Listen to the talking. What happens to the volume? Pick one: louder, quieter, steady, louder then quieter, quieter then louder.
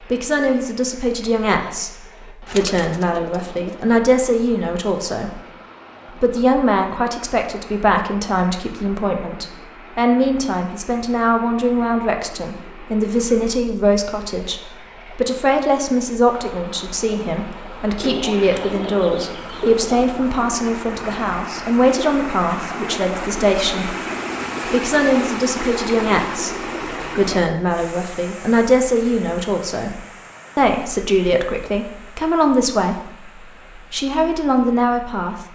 steady.